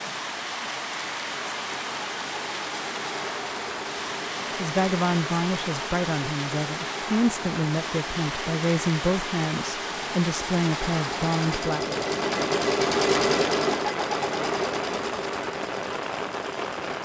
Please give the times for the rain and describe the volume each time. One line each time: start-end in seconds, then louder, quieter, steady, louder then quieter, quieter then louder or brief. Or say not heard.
0.0-17.0 steady.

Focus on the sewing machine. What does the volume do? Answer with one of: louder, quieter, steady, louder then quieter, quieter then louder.
louder.